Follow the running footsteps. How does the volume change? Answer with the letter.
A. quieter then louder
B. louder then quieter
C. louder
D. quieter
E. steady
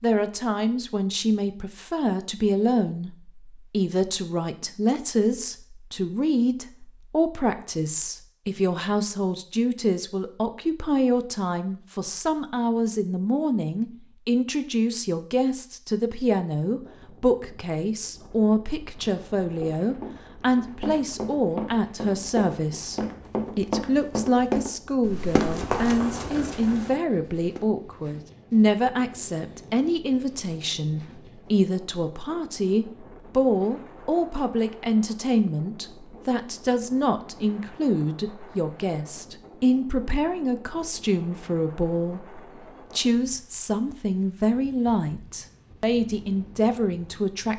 B.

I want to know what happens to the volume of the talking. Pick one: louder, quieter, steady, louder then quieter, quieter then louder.
steady.